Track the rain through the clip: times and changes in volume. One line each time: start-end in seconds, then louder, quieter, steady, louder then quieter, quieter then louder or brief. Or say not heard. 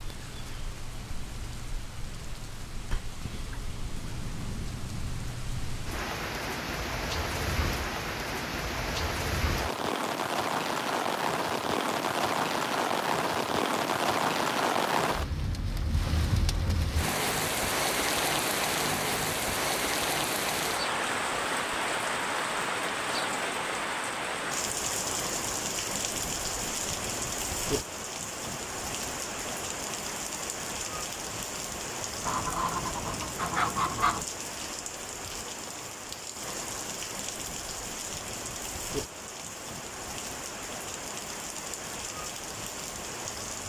0.0-43.6 louder then quieter.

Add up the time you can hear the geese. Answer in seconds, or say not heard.
2 s.